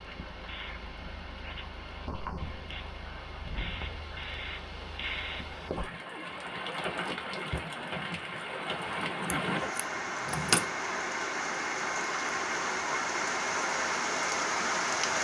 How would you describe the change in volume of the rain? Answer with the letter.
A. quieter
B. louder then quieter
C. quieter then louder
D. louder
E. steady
D.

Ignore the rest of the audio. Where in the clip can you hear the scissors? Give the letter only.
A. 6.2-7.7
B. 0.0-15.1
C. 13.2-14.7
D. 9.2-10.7
D.